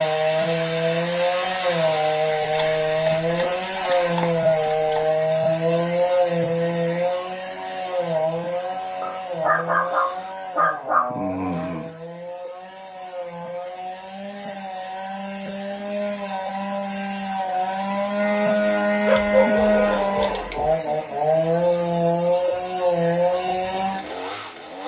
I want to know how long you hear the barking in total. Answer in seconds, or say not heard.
7 s.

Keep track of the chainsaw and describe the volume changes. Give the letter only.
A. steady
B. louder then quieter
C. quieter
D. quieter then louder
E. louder
D.